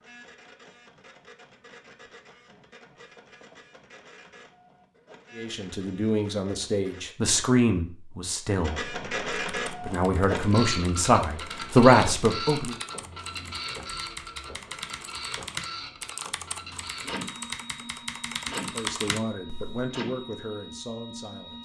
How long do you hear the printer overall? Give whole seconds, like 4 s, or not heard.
20 s.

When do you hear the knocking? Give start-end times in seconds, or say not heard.
3.1-3.9.